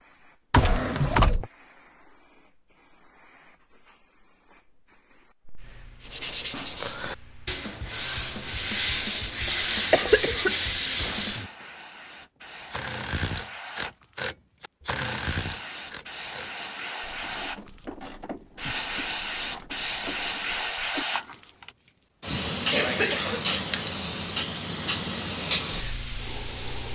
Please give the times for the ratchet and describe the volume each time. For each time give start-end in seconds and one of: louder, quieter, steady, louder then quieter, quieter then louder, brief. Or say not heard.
12.7-21.8 quieter.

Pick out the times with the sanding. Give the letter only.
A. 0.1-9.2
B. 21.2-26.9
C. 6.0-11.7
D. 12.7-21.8
C.